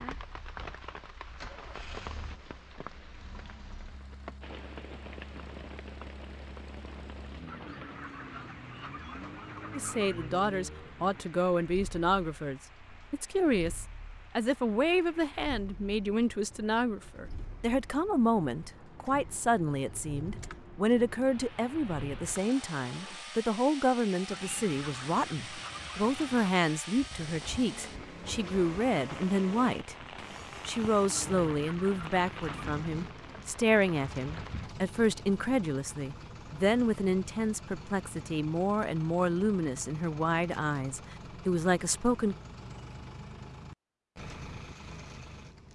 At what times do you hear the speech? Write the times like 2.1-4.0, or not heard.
9.7-29.9, 30.6-42.4.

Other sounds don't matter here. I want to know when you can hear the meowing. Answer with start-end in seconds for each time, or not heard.
not heard.